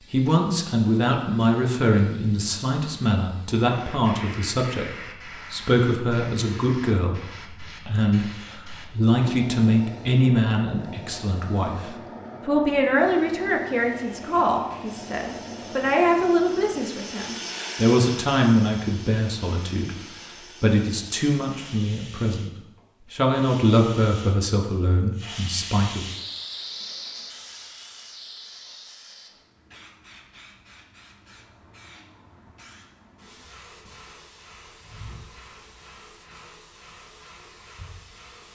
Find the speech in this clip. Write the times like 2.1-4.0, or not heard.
0.0-26.1.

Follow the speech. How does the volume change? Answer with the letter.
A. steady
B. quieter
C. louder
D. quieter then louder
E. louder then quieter
A.